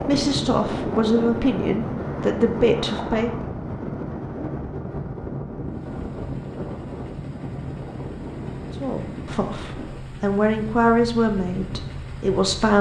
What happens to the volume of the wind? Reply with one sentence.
The volume of the wind goes down.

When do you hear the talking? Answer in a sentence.
You can hear the talking from 0.0 to 3.5 s and from 8.8 to 12.7 s.